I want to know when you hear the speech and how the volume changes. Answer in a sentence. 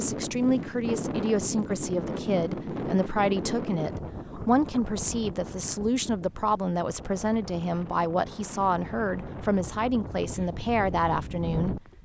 You can hear the speech from 0.0 to 11.8 s, at a steady volume.